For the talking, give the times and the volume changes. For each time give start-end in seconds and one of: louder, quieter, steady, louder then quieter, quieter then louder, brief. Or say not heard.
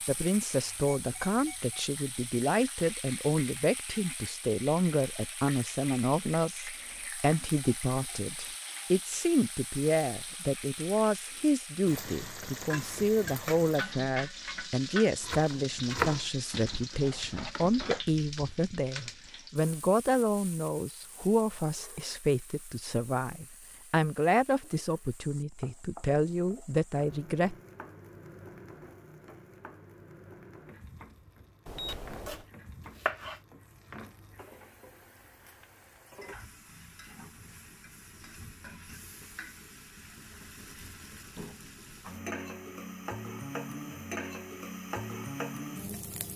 0.1-27.6 steady.